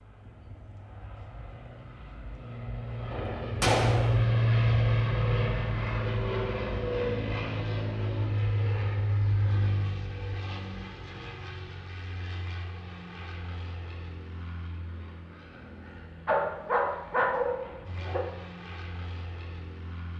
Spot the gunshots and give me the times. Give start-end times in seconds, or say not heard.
3.1-4.2.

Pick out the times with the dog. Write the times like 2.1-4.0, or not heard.
16.2-18.2.